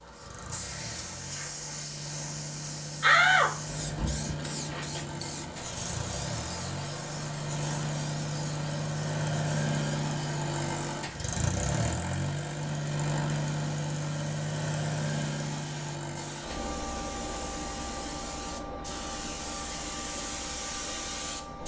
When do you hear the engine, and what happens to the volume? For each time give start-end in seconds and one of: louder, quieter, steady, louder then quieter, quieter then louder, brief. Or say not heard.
0.0-21.6 louder then quieter.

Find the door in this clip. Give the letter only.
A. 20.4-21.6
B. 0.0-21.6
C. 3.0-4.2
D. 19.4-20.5
C.